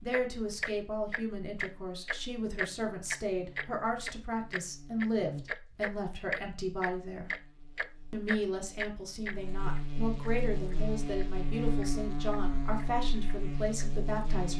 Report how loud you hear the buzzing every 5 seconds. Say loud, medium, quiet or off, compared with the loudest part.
quiet, medium, loud.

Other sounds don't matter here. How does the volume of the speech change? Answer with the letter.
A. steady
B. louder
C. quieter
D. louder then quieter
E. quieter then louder
A.